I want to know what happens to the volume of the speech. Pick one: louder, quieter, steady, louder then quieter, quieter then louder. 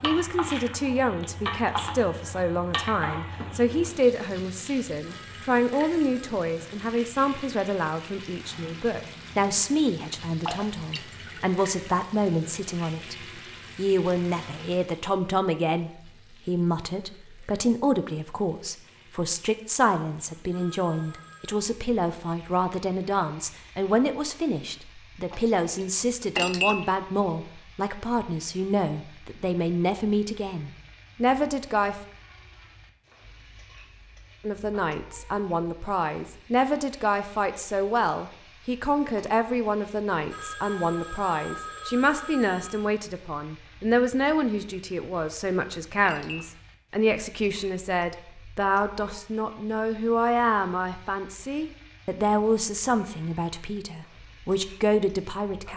steady.